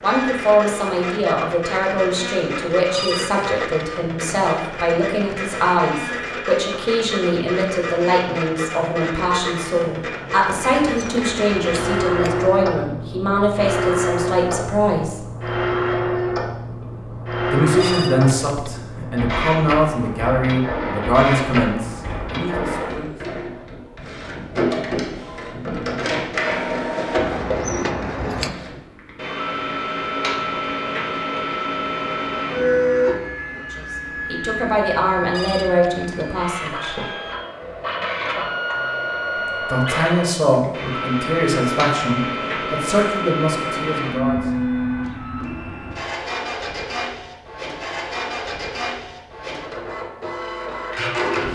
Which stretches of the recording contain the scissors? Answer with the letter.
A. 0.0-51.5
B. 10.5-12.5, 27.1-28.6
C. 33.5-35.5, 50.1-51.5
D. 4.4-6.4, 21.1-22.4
B.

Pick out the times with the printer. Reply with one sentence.
The printer can be heard from 0.0 to 51.5 s.